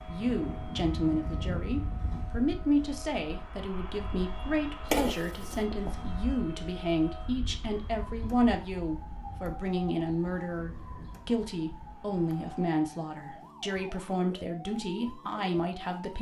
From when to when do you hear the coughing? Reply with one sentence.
The coughing can be heard from 4.9 to 5.7 s.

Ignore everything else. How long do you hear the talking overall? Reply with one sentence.
You can hear the talking for 16 seconds altogether.